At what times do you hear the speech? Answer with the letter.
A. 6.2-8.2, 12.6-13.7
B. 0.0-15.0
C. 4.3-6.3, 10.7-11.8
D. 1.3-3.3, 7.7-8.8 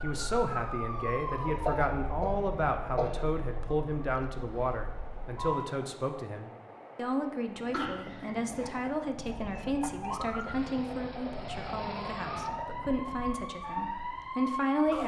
B.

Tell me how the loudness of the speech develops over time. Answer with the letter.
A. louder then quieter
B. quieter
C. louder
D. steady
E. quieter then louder
D.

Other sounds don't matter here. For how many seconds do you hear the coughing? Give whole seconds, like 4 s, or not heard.
3 s.